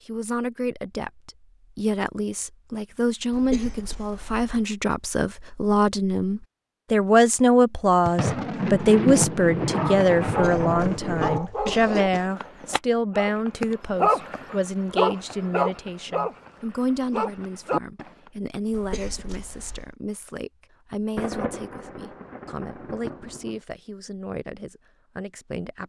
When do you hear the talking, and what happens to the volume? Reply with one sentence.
You can hear the talking from 0.1 to 25.8 s, getting louder then quieter.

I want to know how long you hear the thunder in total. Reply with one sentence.
You can hear the thunder for 6 seconds altogether.